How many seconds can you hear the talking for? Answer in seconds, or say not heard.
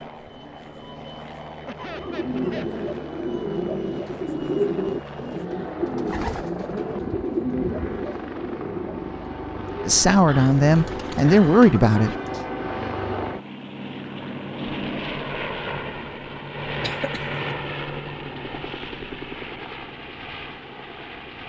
2 s.